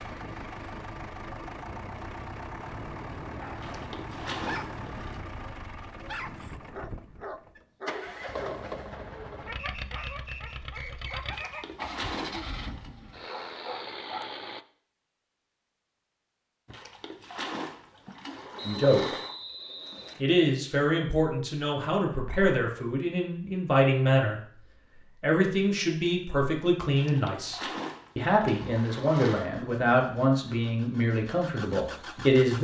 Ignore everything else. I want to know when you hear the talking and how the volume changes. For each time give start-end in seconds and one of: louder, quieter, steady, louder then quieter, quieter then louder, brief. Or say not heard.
18.6-19.1 brief
20.2-32.5 steady.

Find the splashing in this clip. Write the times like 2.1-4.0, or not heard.
3.5-5.2, 11.2-12.9, 16.6-19.4, 26.9-29.5.